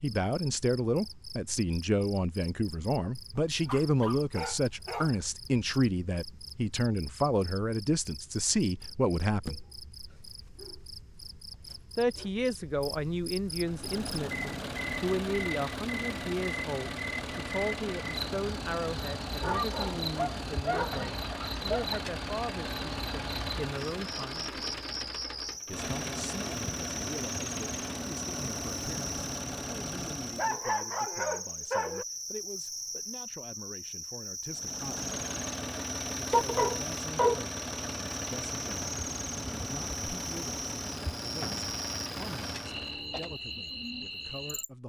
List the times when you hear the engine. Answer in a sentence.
The engine can be heard from 13.5 to 30.6 s and from 34.5 to 43.0 s.